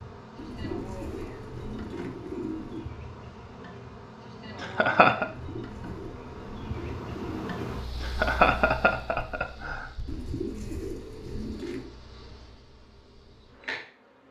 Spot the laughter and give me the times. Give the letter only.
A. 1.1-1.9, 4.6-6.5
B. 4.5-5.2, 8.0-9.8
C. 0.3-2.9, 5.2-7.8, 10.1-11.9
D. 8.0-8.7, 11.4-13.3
B.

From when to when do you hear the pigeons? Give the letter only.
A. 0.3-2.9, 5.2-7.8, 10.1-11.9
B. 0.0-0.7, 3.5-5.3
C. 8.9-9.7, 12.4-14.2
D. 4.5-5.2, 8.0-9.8
A.